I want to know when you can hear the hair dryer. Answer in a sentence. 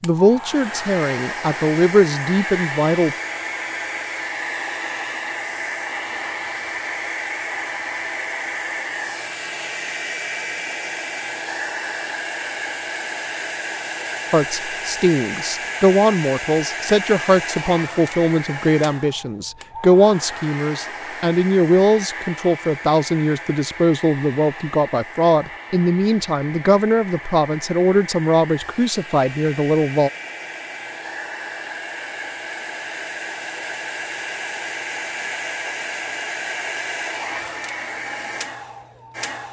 The hair dryer can be heard from 0.0 to 39.4 s.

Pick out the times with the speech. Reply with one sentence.
The speech can be heard from 0.0 to 3.1 s and from 14.3 to 30.1 s.